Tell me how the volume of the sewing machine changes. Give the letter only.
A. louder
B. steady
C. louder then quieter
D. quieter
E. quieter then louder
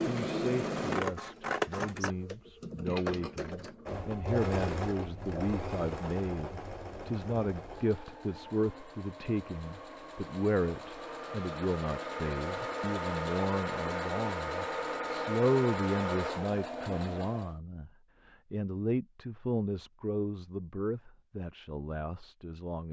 E.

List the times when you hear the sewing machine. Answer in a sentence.
The sewing machine can be heard from 0.0 to 17.6 s.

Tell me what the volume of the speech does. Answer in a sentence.
The loudness of the speech stays about the same.